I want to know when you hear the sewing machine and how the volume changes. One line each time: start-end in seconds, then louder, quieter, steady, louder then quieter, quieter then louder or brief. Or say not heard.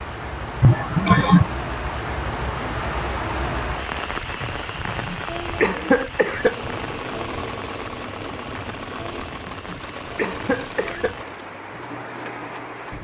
6.2-12.9 quieter.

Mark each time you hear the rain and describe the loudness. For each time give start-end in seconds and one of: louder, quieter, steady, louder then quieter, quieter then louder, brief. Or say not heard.
0.0-12.9 quieter.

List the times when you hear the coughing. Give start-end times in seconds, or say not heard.
0.6-1.6, 4.4-6.6, 9.0-11.2.